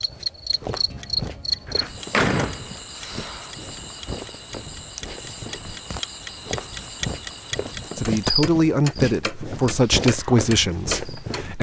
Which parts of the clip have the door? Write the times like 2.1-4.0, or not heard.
1.6-3.5.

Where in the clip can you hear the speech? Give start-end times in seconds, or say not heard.
8.0-11.5.